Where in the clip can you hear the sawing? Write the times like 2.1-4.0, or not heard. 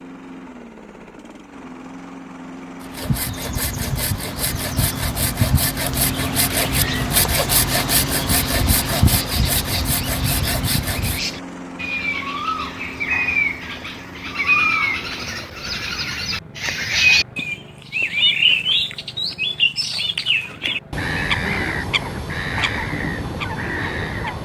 2.8-11.3.